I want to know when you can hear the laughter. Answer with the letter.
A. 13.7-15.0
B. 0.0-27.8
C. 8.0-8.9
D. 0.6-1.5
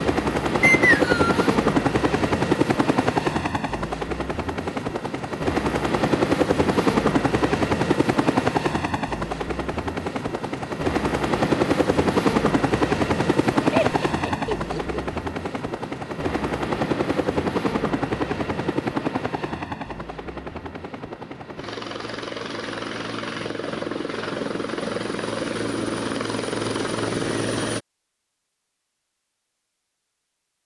A.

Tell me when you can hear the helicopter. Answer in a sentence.
You can hear the helicopter from 0.0 to 27.8 s.